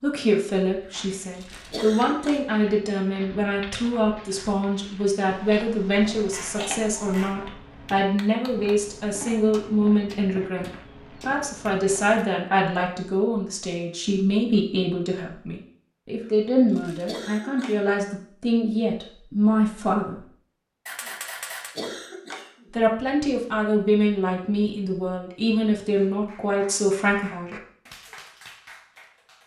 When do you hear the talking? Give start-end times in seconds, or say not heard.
0.0-10.7, 11.2-20.2, 22.7-27.6.